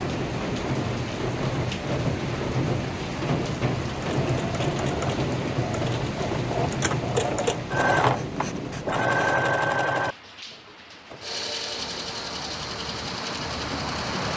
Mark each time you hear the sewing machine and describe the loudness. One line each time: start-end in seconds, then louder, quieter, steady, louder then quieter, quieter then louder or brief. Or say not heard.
3.9-14.3 louder then quieter.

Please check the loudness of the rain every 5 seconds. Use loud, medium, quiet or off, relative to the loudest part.
loud, loud, medium.